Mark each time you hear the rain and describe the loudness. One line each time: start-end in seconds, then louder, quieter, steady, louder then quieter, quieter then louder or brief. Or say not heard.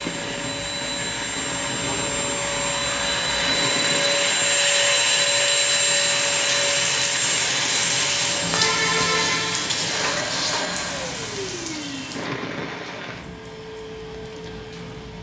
0.0-15.1 louder then quieter.